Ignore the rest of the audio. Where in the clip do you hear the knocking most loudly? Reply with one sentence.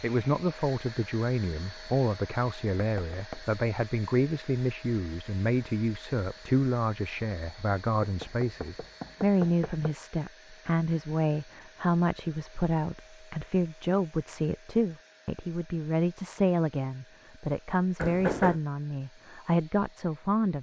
The volume of the knocking peaks at 18 seconds.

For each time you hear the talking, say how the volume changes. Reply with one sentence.
The talking can be heard from 0.0 to 20.5 s, at a steady volume.